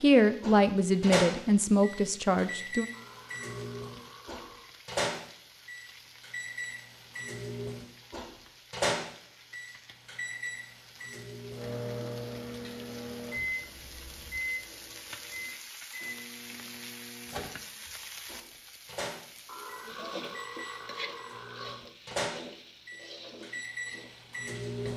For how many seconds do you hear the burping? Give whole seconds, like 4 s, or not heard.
5 s.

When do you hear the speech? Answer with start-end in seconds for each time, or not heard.
0.0-2.9.